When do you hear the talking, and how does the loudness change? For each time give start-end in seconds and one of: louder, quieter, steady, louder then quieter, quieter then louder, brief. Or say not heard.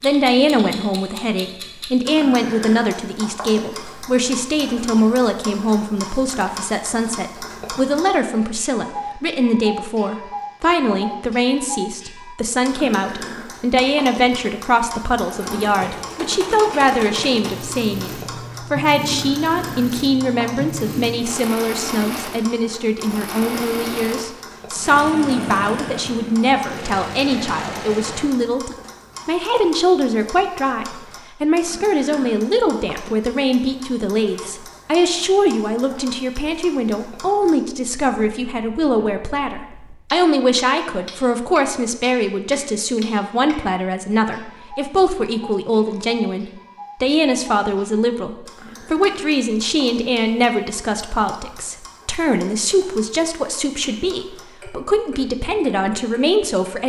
0.0-56.8 steady.